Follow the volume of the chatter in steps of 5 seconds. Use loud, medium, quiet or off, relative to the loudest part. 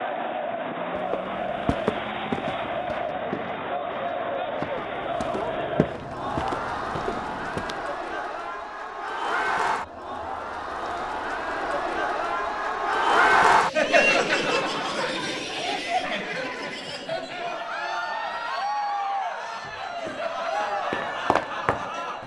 medium, medium, loud, medium, medium.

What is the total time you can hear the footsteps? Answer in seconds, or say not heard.
9 s.